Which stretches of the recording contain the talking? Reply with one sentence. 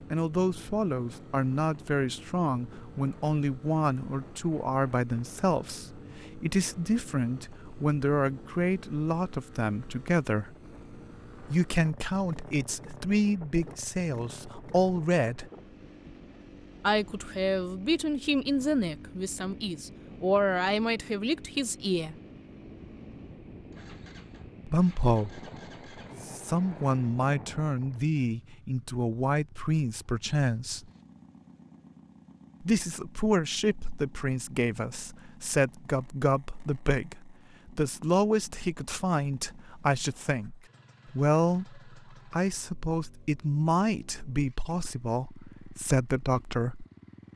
The talking can be heard from 0.1 to 10.5 s, from 11.5 to 15.4 s, from 16.8 to 22.1 s, from 24.6 to 25.4 s, from 26.2 to 30.9 s and from 32.6 to 46.9 s.